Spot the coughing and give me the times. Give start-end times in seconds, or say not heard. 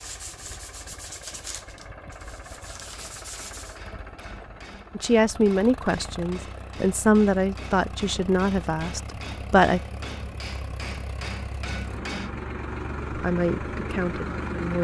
not heard.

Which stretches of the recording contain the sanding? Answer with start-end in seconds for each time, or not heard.
0.0-3.8.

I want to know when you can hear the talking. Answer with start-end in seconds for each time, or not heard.
5.0-9.8, 13.1-14.7.